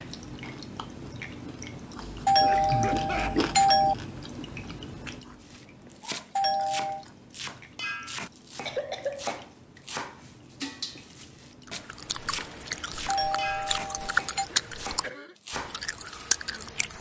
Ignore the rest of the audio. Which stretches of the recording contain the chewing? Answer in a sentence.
The chewing can be heard from 0.2 to 7.3 s and from 11.7 to 16.9 s.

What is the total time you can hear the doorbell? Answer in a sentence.
You can hear the doorbell for 4 seconds altogether.